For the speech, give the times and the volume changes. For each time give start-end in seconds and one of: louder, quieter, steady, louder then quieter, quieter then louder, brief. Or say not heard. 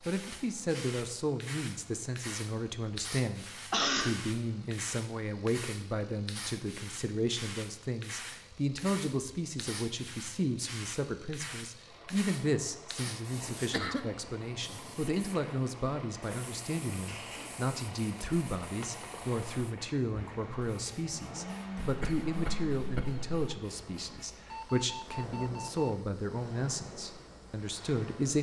0.1-28.3 steady.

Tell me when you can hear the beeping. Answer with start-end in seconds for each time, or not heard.
24.4-25.9.